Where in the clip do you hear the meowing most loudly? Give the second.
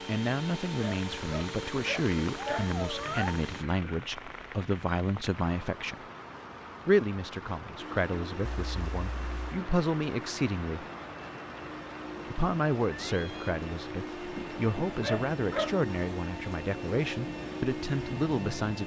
3 s.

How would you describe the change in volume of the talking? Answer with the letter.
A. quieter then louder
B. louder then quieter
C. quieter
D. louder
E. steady
E.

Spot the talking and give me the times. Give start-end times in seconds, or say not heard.
0.1-6.0, 6.8-10.8, 12.3-18.8.